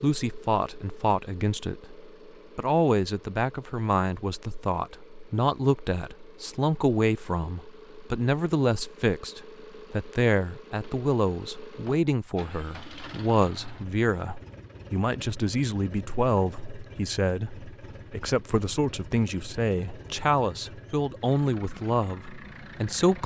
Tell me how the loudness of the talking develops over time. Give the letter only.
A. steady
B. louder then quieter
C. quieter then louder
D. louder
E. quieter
A.